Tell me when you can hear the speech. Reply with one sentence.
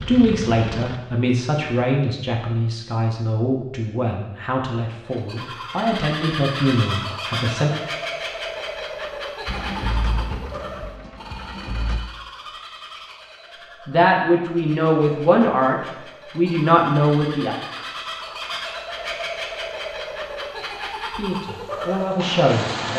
The speech can be heard from 0.1 to 7.7 s, from 13.8 to 17.6 s and from 21.0 to 22.9 s.